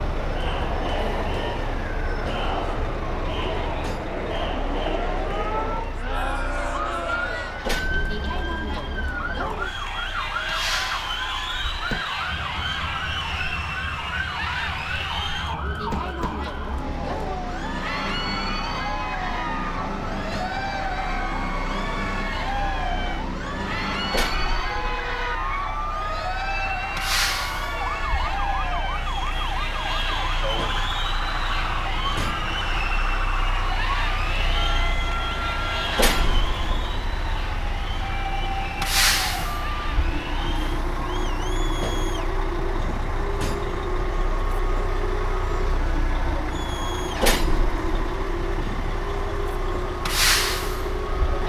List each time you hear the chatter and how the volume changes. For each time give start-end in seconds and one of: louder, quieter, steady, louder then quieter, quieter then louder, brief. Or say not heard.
0.0-51.4 quieter.